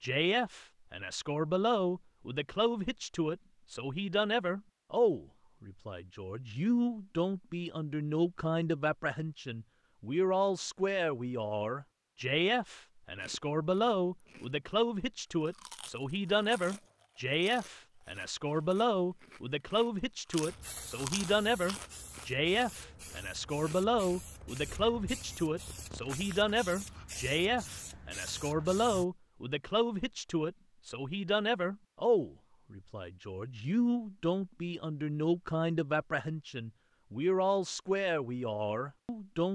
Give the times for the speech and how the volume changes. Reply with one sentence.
The speech can be heard from 0.0 to 39.4 s, at a steady volume.